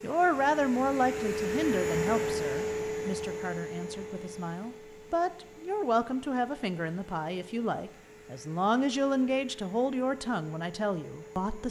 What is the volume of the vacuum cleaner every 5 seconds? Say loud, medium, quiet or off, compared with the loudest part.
loud, quiet, quiet.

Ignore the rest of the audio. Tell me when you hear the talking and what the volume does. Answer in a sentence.
The talking can be heard from 0.0 to 11.6 s, getting quieter then louder.